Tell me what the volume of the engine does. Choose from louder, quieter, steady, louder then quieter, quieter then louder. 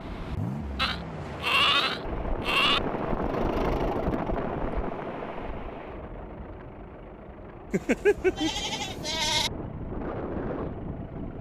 louder then quieter.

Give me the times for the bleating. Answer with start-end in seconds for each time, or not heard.
0.8-2.8, 7.7-9.5.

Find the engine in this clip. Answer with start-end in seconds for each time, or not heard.
0.0-11.3.